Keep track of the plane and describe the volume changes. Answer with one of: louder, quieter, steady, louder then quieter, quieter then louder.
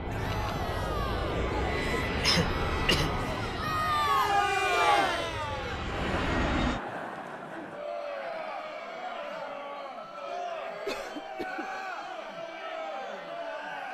quieter then louder.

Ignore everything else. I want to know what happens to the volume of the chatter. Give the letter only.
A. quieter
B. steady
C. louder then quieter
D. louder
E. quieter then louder
C.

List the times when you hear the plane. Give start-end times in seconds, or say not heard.
0.0-6.8.